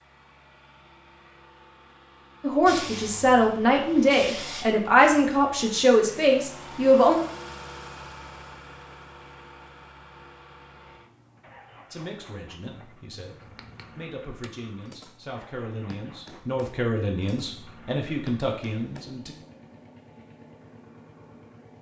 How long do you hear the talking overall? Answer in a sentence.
The talking can be heard for 12 seconds in total.